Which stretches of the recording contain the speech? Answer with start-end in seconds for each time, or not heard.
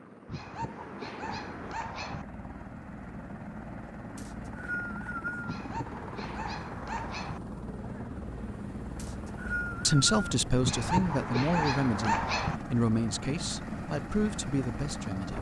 9.8-15.3.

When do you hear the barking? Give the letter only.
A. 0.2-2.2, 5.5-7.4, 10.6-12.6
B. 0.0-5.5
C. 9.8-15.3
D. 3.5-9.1
A.